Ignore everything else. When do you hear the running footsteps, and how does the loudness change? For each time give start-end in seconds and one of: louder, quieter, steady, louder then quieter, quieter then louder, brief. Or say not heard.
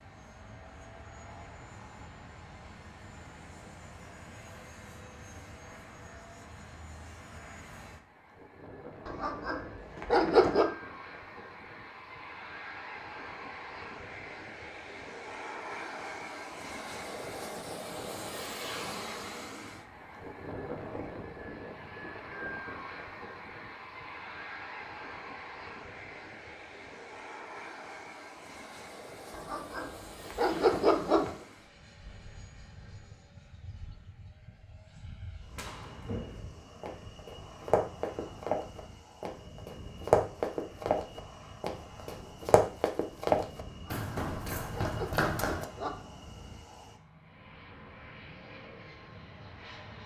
35.5-45.6 louder then quieter.